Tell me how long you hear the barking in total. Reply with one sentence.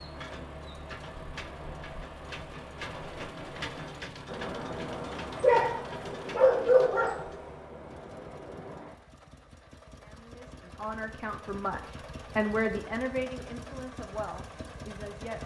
The barking can be heard for 2 seconds in total.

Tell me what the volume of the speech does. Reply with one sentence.
The volume of the speech goes up, then down.